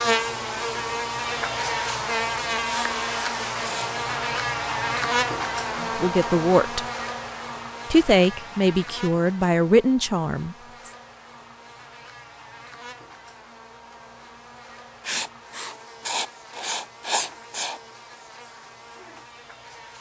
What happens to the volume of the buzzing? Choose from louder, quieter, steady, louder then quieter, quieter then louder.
quieter.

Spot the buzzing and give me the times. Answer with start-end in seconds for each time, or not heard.
0.0-19.9.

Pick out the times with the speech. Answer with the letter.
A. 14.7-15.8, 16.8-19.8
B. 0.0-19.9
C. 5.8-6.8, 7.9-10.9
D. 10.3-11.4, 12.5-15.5
C.